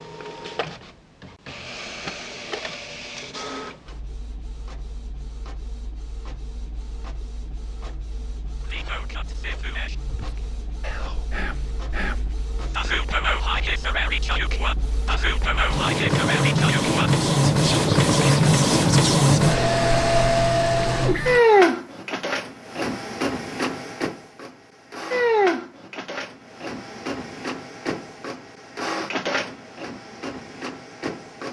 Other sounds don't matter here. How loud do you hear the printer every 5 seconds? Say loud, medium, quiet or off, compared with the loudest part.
quiet, quiet, quiet, loud, loud, medium, quiet.